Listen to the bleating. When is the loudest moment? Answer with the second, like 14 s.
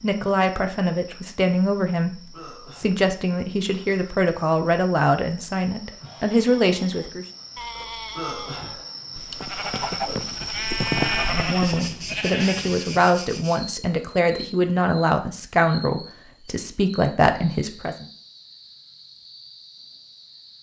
11 s.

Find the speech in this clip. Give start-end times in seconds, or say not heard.
0.0-7.2, 11.2-18.1.